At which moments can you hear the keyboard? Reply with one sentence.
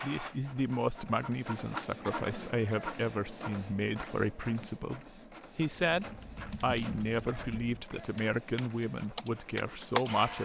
You can hear the keyboard from 5.7 to 10.2 s.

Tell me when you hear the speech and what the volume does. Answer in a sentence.
The speech can be heard from 0.0 to 10.3 s, at a steady volume.